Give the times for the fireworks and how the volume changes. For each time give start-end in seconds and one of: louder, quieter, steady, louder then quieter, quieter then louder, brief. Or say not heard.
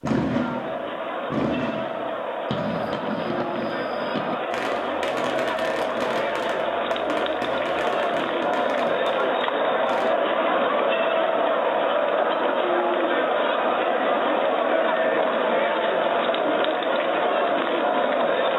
0.0-10.1 quieter.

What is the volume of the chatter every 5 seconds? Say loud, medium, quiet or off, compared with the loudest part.
medium, loud, loud, loud.